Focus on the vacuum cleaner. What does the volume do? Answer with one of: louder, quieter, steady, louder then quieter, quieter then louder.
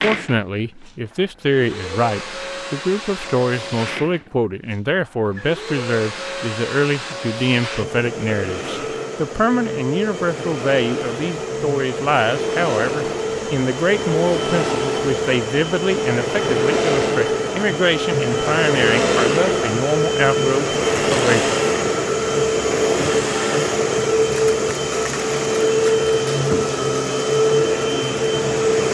louder.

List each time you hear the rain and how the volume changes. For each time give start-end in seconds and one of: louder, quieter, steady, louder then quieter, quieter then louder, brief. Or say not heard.
not heard.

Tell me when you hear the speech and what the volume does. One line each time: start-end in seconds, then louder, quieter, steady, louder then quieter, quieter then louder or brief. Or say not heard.
0.0-21.6 steady.